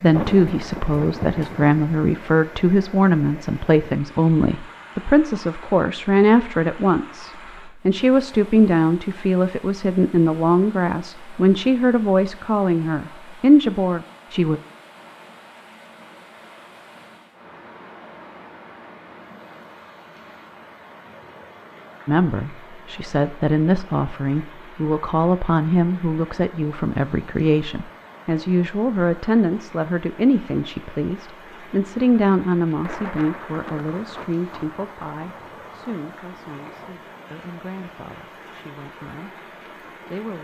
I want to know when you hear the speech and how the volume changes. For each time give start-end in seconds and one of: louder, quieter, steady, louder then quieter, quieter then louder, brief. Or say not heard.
0.0-14.6 steady
22.1-40.3 quieter.